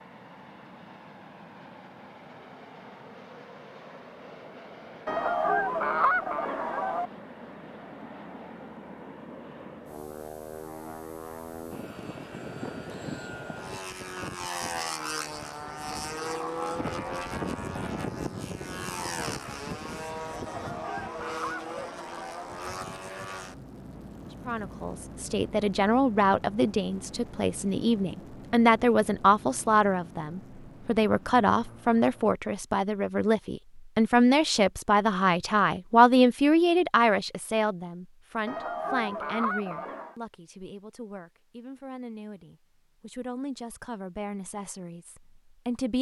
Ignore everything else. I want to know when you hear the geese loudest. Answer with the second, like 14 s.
6 s.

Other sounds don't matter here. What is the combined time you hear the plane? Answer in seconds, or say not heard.
32 s.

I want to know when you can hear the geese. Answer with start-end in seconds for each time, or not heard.
5.0-7.1, 20.4-22.4, 38.5-40.1.